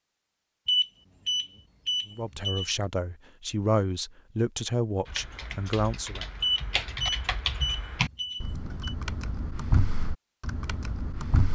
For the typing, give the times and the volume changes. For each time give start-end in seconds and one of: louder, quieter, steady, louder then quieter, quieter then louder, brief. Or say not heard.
5.0-11.5 louder then quieter.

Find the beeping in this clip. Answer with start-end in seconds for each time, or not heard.
0.7-2.7, 6.4-8.9.